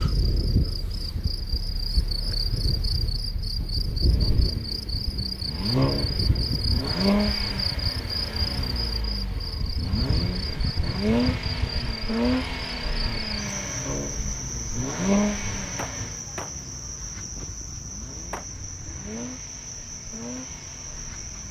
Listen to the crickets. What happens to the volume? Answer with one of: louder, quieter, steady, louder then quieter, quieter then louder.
quieter.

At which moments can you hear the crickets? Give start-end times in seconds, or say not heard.
0.0-21.4.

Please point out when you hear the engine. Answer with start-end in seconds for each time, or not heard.
0.0-21.4.